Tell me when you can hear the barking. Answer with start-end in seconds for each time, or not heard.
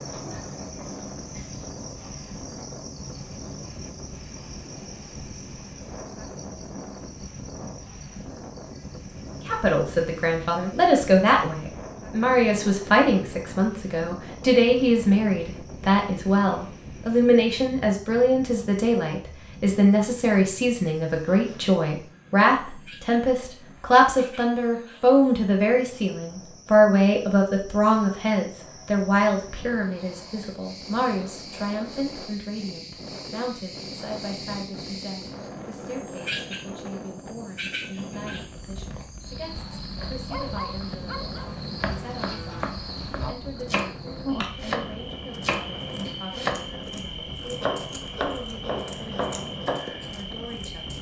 39.4-41.5.